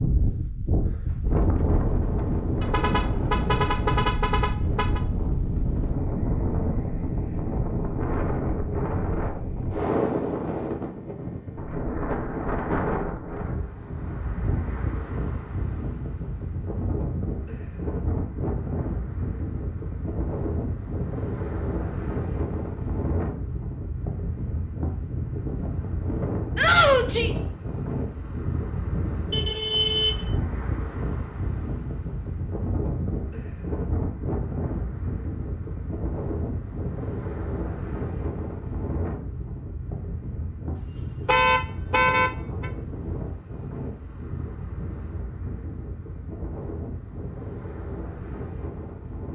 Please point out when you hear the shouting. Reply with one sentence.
The shouting can be heard from 26.6 to 27.3 s.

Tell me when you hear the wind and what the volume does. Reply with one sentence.
The wind can be heard from 0.0 to 49.2 s, getting quieter.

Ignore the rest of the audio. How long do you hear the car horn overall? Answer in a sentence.
You can hear the car horn for 5 seconds altogether.